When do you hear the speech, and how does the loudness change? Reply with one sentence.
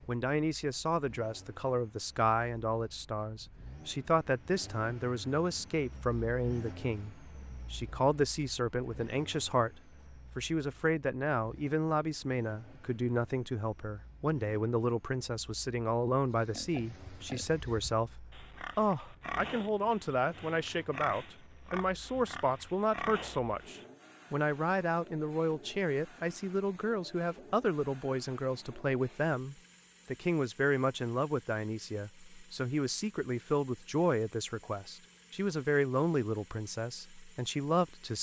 The speech can be heard from 0.1 to 38.1 s, at a steady volume.